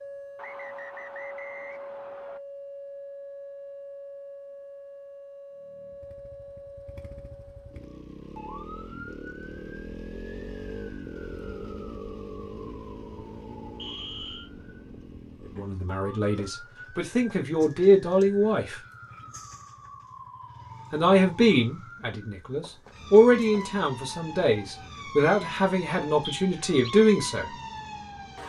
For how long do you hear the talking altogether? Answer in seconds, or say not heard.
10 s.